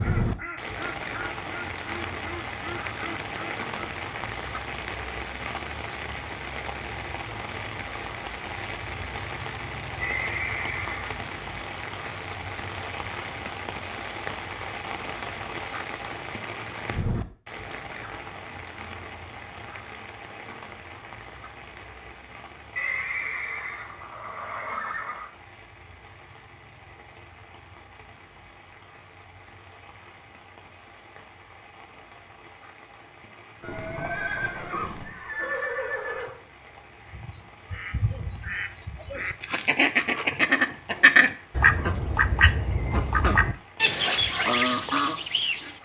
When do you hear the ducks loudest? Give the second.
41 s.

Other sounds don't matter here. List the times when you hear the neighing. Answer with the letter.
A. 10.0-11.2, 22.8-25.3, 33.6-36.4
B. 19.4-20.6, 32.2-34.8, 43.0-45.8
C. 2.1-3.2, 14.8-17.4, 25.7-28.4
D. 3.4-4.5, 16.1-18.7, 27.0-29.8
A.